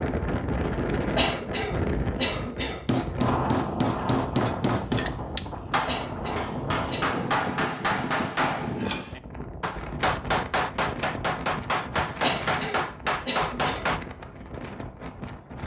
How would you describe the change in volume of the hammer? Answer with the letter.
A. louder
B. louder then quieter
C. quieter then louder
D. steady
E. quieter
D.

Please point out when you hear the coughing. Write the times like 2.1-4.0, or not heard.
1.1-2.8, 5.8-7.2, 12.2-13.8.